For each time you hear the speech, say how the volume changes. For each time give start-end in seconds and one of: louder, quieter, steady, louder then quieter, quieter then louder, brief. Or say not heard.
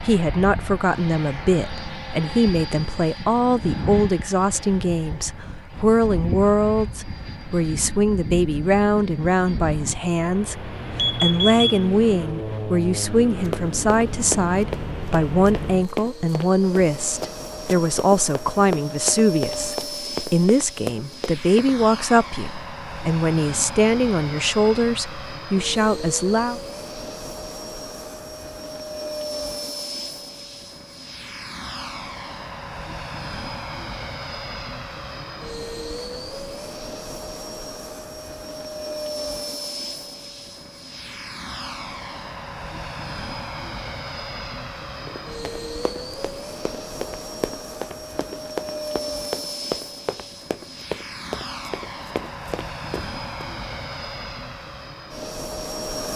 0.0-26.6 steady.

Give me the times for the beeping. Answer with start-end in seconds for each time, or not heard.
10.9-11.8.